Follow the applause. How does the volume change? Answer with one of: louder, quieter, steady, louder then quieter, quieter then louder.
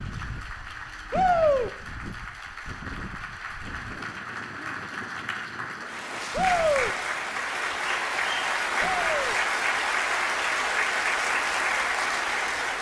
louder.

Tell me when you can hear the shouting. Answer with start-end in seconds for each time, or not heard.
1.1-1.7, 6.3-7.0, 8.8-9.4.